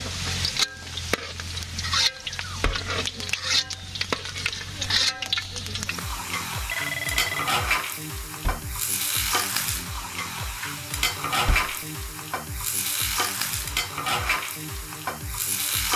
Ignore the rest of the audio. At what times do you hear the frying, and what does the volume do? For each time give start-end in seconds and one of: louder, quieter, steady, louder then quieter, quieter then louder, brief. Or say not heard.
0.0-15.9 steady.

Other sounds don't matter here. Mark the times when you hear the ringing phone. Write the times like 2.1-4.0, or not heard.
6.7-7.5.